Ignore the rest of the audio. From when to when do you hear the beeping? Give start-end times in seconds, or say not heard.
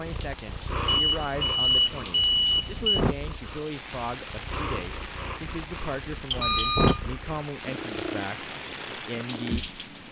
0.9-3.0, 6.3-7.0.